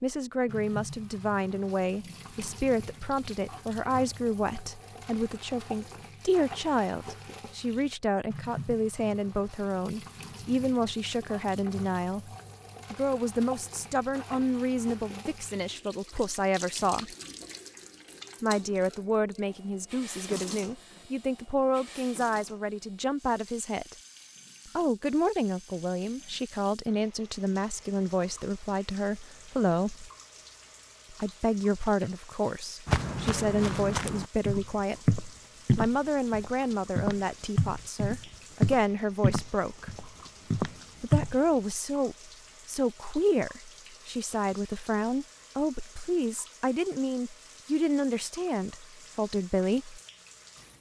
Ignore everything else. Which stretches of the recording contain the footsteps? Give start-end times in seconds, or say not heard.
32.9-41.4.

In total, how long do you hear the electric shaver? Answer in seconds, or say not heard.
not heard.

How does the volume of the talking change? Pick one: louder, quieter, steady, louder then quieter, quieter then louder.
steady.